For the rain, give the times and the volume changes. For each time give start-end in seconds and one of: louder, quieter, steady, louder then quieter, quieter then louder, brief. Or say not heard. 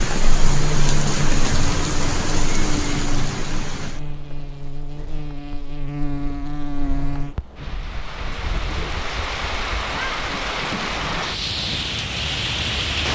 0.0-13.1 quieter then louder.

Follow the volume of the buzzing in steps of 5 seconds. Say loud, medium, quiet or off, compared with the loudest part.
loud, loud, off.